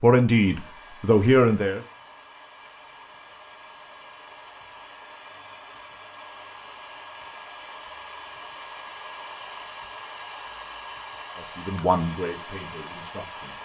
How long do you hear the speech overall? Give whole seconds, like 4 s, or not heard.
4 s.